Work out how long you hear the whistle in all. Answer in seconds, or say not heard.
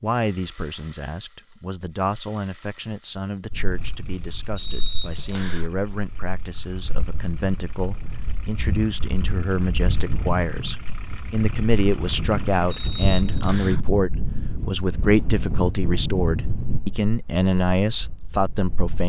2 s.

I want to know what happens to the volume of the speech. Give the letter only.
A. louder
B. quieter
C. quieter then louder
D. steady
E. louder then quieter
A.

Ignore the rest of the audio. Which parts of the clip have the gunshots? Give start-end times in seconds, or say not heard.
not heard.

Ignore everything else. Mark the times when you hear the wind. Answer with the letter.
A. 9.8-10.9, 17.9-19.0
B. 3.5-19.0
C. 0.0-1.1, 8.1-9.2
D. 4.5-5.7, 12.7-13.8
B.